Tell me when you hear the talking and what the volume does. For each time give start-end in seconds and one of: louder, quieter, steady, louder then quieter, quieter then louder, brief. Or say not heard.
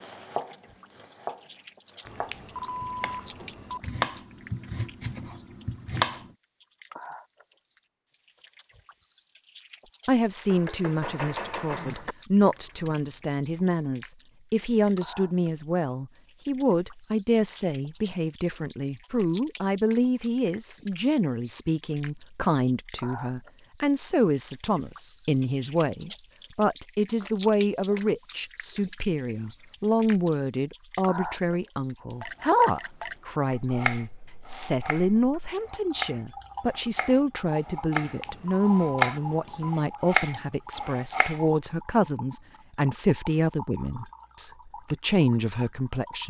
10.1-46.2 steady.